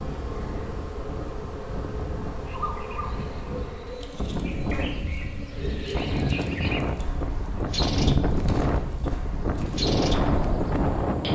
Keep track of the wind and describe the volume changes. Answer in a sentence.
The volume of the wind goes up.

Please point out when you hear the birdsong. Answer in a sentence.
You can hear the birdsong from 2.5 to 11.3 s.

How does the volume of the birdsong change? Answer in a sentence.
The volume of the birdsong goes up.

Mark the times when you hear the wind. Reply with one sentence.
The wind can be heard from 0.0 to 11.3 s.